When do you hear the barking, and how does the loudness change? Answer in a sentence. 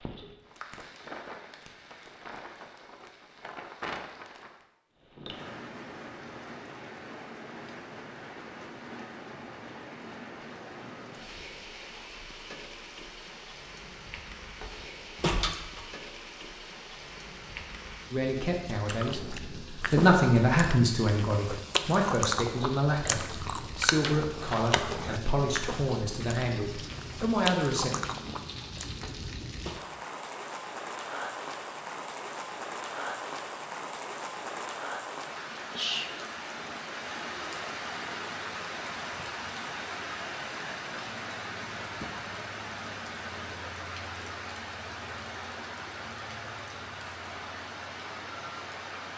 The barking can't be heard in this clip.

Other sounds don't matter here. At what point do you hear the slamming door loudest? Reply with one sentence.
The volume of the slamming door peaks at 15 seconds.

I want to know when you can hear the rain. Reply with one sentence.
You can hear the rain from 0.0 to 49.1 s.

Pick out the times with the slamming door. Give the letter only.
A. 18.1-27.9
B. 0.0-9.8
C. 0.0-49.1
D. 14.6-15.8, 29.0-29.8
D.